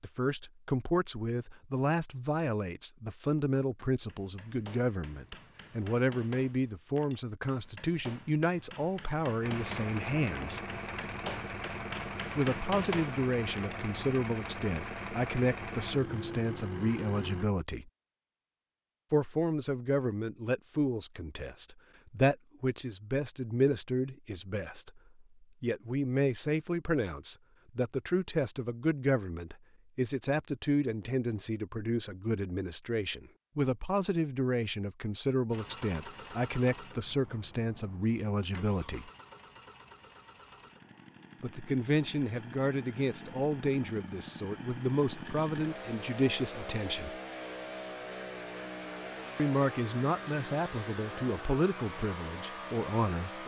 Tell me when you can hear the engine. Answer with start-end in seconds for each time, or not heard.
9.4-17.5, 35.5-53.4.